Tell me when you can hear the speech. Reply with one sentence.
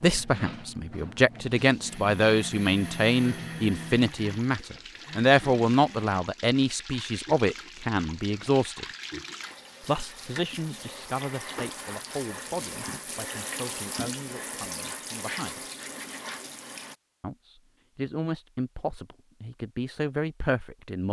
You can hear the speech from 0.0 to 8.8 s, from 9.8 to 15.6 s and from 17.2 to 21.0 s.